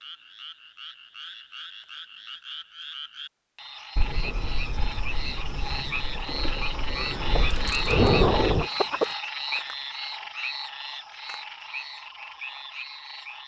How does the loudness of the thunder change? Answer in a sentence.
The loudness of the thunder goes up.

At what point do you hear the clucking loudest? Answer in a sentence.
The volume of the clucking peaks at 9 seconds.